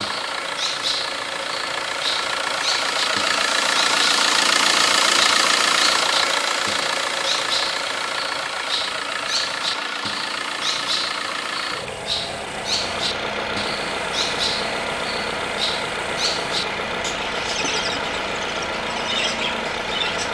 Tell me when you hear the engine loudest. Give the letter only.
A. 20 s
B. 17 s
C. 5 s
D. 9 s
C.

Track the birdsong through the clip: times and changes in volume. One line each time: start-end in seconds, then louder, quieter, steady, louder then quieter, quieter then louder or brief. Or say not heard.
0.0-20.3 steady.